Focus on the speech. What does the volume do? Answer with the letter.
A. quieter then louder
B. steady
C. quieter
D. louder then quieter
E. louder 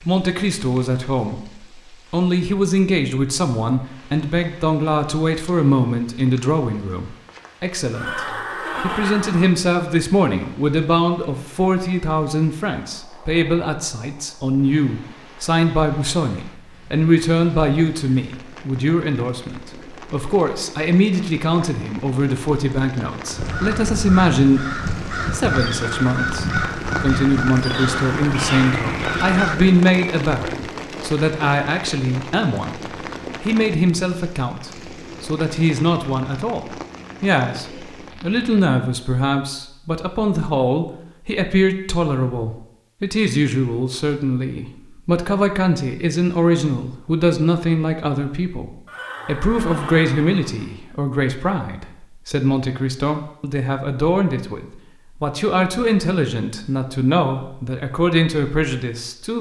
B.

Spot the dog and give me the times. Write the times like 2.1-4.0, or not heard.
not heard.